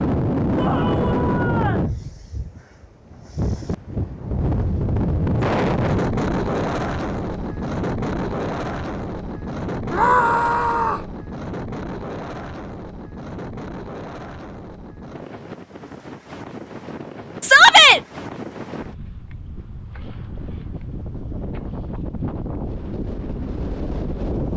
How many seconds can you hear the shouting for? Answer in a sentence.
The shouting can be heard for 3 seconds in total.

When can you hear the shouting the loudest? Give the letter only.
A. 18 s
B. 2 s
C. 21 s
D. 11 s
A.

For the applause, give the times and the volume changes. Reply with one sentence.
You can't hear the applause here.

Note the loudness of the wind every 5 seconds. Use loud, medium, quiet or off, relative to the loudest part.
loud, loud, medium, quiet, medium.